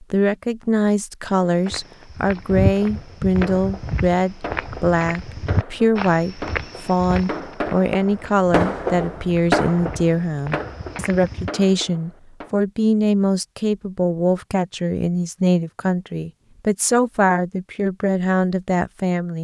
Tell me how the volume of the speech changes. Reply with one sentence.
The volume of the speech stays about the same.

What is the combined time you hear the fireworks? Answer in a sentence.
You can hear the fireworks for 10 seconds altogether.